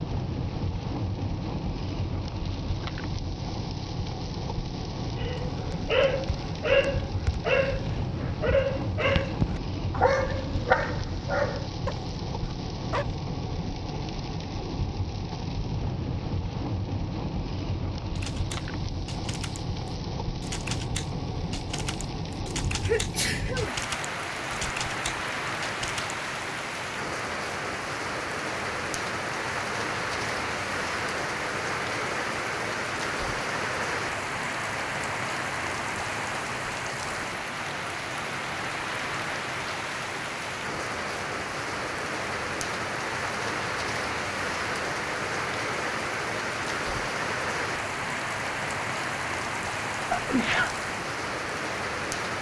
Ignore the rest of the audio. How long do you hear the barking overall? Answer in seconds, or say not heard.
8 s.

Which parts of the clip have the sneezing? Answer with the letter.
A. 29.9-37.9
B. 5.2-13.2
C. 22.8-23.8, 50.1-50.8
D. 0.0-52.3
C.